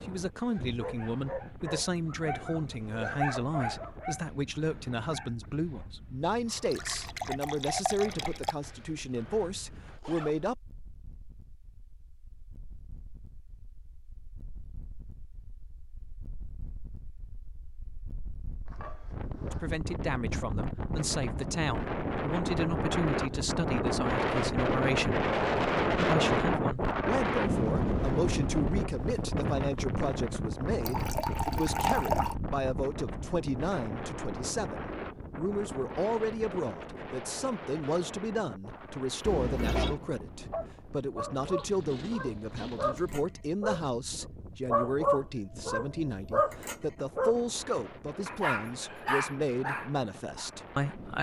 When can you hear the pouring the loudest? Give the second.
32 s.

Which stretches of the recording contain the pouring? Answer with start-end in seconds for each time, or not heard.
6.5-8.6, 30.9-32.4, 39.2-40.0.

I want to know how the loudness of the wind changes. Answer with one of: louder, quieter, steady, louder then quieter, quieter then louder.
louder then quieter.